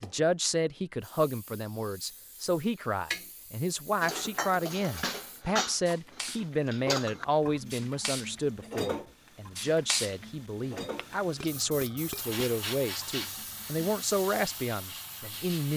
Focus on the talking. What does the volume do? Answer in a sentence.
The loudness of the talking stays about the same.